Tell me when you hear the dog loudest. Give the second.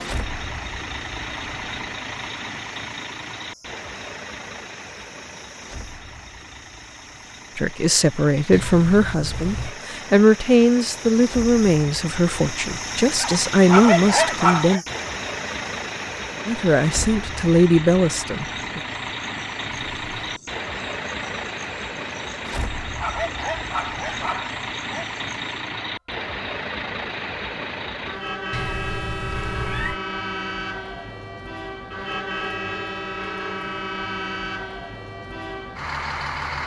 14 s.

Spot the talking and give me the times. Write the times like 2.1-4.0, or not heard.
7.5-14.8, 16.4-18.8.